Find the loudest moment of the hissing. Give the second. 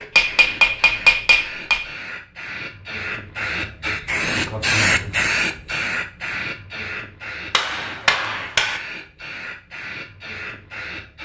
5 s.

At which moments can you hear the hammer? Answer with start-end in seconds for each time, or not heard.
0.1-1.9, 7.5-8.8.